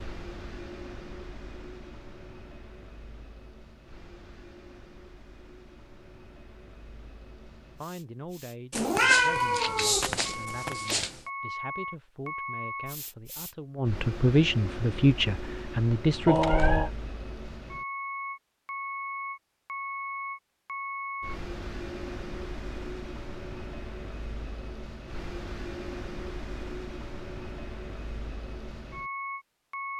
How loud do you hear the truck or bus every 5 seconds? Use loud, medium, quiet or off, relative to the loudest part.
medium, quiet, loud, loud, loud, loud.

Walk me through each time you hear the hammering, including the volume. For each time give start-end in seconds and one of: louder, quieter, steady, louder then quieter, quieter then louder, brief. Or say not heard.
not heard.